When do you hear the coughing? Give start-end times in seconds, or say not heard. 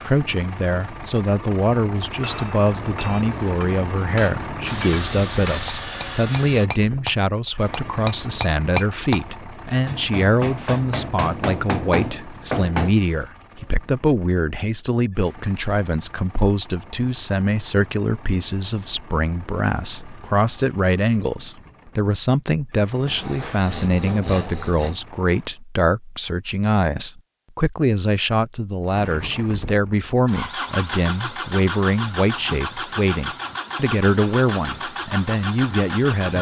not heard.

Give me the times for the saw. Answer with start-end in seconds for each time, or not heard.
4.7-6.7, 23.1-25.0.